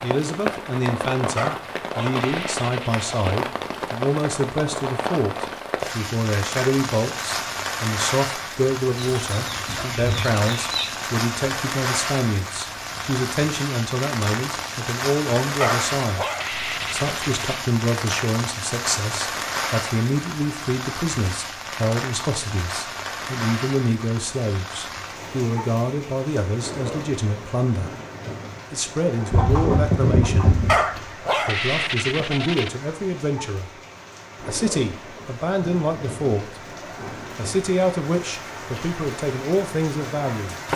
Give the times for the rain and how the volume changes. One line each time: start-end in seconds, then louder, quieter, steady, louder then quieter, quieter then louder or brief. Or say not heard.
0.0-40.7 quieter.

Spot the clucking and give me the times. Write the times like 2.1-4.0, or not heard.
9.0-10.8, 29.3-31.0.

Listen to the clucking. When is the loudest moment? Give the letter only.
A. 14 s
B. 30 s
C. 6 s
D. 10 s
B.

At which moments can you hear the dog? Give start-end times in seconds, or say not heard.
1.4-3.4, 15.6-17.6, 30.6-32.7.